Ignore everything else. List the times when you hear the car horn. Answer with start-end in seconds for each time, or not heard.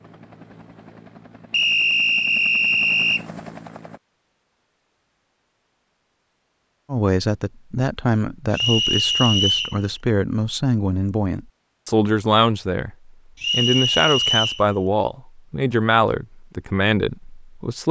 not heard.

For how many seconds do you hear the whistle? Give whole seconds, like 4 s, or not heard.
4 s.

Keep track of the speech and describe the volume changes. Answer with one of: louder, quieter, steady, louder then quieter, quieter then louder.
steady.